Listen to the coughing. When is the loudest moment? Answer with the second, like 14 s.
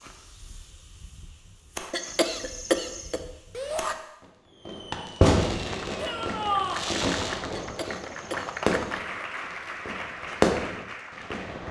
3 s.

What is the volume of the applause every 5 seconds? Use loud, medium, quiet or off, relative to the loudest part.
off, loud, loud.